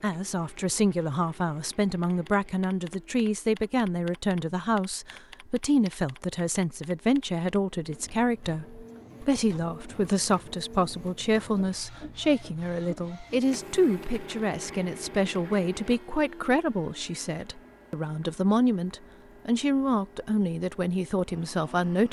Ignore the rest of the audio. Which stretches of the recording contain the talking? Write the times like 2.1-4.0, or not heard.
0.0-22.0.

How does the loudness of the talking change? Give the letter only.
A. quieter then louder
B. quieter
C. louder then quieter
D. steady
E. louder
D.